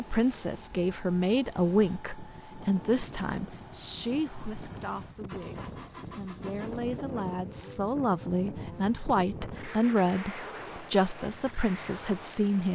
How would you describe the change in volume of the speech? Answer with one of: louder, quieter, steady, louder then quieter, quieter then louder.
quieter then louder.